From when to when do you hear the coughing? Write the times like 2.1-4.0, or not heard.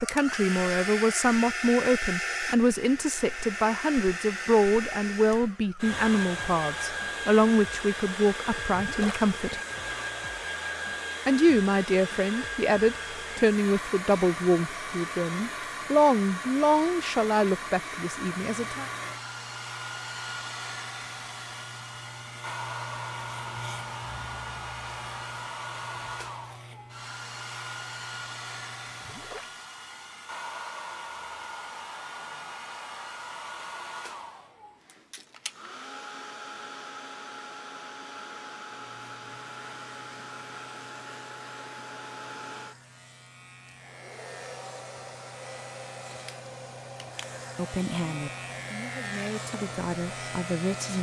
not heard.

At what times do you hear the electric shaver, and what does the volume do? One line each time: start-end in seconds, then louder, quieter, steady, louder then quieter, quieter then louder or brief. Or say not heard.
18.5-29.4 louder then quieter
38.7-50.9 louder.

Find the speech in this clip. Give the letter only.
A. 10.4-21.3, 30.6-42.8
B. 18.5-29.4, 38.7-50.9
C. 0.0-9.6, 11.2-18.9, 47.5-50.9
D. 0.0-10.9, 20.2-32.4
C.